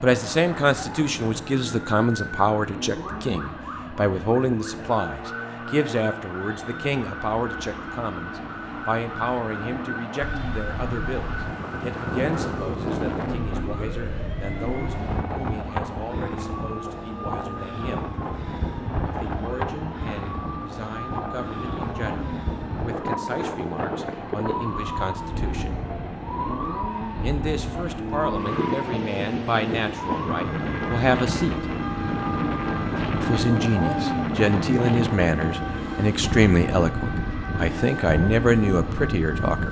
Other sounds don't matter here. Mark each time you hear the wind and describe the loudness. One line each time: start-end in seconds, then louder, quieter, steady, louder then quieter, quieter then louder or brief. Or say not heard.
10.2-39.6 steady.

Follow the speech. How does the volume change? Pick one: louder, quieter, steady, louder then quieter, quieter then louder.
quieter then louder.